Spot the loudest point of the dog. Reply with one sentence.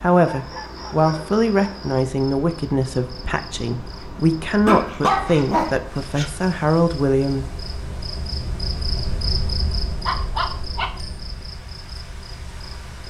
The loudest moment of the dog is at 5 seconds.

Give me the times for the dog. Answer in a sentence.
You can hear the dog from 0.2 to 1.9 s, from 4.7 to 6.2 s and from 10.1 to 11.1 s.